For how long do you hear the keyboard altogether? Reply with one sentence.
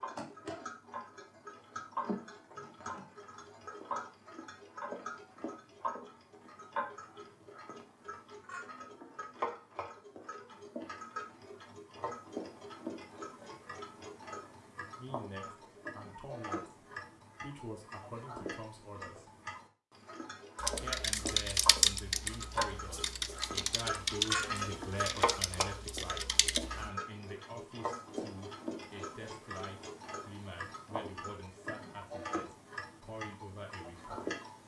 The keyboard can be heard for 6 seconds in total.